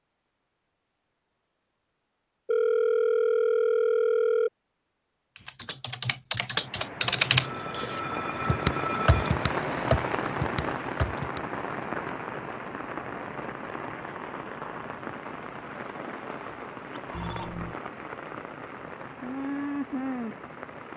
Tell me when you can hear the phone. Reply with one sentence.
The phone can be heard from 2.5 to 4.5 s, from 7.3 to 9.3 s and from 17.1 to 17.8 s.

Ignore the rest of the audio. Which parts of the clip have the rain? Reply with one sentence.
You can hear the rain from 6.5 to 20.9 s.